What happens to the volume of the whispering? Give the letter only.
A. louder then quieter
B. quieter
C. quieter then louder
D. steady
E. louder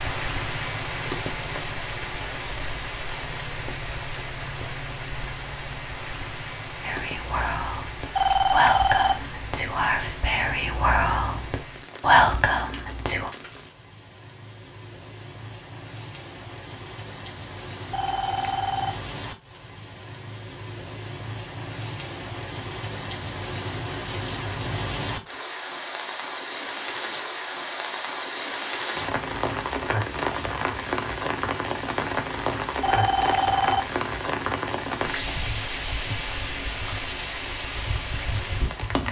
E.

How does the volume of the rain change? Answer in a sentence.
The loudness of the rain goes down, then up.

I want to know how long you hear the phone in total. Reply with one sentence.
The phone can be heard for 3 seconds in total.